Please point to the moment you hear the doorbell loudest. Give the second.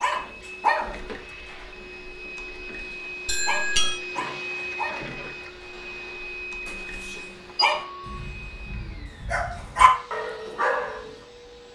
4 s.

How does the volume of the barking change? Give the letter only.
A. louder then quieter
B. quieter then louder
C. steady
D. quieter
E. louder
B.